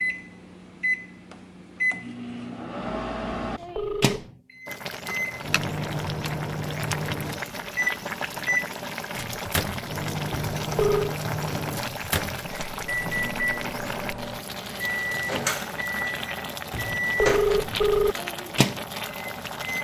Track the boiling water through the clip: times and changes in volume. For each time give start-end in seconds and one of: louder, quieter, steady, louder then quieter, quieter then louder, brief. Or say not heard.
4.7-19.7 steady.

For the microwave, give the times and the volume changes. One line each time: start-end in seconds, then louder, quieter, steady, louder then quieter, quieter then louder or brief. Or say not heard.
0.0-19.7 steady.